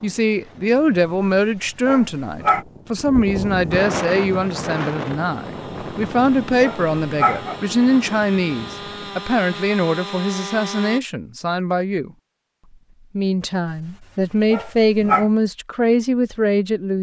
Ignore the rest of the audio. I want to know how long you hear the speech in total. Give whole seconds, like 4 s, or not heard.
16 s.